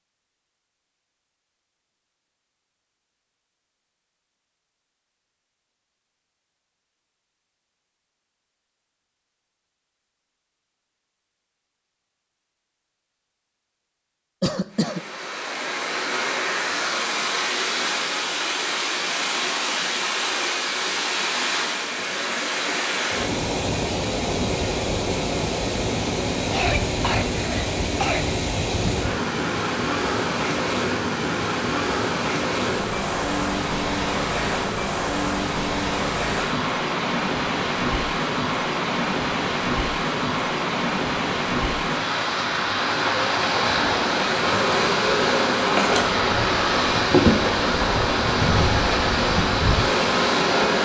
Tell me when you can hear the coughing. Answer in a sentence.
The coughing can be heard from 14.4 to 15.0 s and from 26.5 to 28.2 s.